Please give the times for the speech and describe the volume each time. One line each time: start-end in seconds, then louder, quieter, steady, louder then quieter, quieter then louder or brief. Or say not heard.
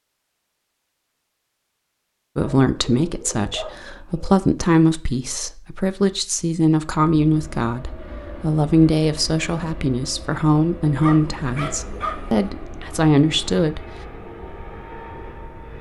2.4-13.8 steady.